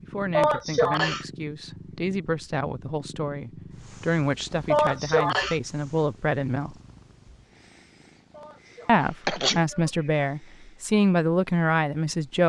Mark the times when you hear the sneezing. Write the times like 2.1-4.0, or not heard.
0.3-1.2, 4.7-5.5, 8.3-9.9.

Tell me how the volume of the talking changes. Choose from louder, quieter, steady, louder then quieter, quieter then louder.
louder.